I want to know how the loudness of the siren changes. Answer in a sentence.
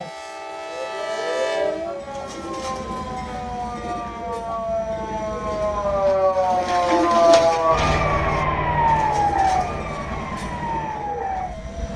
The volume of the siren goes up, then down.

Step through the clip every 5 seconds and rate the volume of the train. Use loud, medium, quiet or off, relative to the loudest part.
loud, medium, medium.